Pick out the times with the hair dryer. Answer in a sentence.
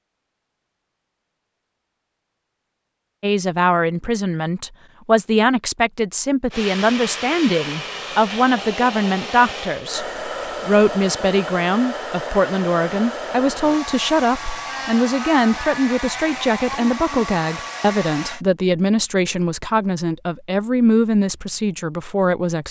The hair dryer can be heard from 6.5 to 18.4 s.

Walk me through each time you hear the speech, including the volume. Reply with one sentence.
The speech can be heard from 3.2 to 10.1 s, at a steady volume; and from 10.7 to 22.6 s, at a steady volume.